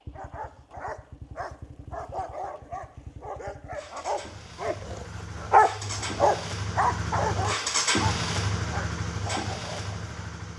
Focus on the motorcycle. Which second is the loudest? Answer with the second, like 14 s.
8 s.